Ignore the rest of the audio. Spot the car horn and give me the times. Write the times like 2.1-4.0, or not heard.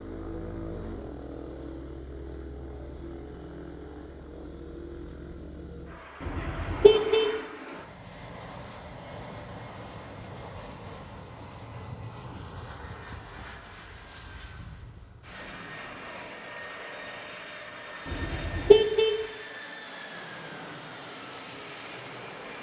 6.2-7.3, 18.1-19.1.